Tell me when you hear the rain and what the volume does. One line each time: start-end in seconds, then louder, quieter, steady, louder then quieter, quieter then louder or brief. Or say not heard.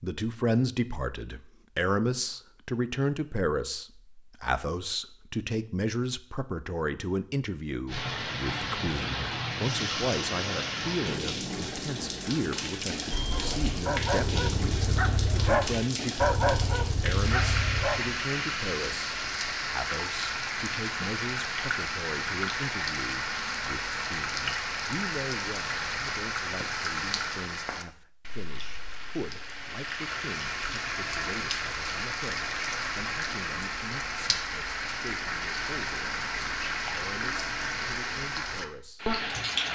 7.8-39.6 steady.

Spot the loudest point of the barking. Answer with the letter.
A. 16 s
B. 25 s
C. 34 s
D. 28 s
A.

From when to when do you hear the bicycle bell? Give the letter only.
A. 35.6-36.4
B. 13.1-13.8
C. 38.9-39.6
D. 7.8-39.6
B.